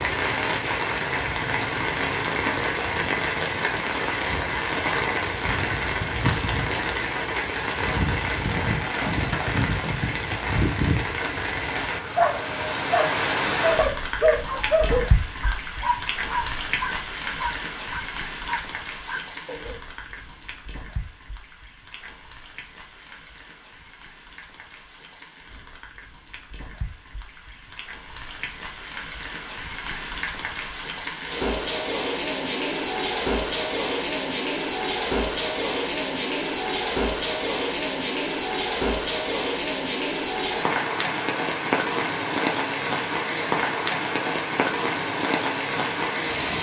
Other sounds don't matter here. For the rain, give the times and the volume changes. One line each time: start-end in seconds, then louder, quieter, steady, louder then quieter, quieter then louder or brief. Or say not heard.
0.0-46.5 quieter then louder.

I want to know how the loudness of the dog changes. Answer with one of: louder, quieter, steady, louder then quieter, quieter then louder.
quieter.